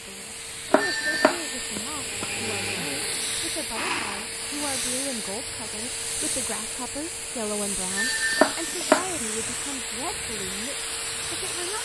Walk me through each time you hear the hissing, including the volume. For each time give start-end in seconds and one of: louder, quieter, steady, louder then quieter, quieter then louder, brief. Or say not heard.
0.0-11.8 steady.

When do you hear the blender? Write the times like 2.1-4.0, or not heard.
1.9-4.8.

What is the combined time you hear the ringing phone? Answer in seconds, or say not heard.
2 s.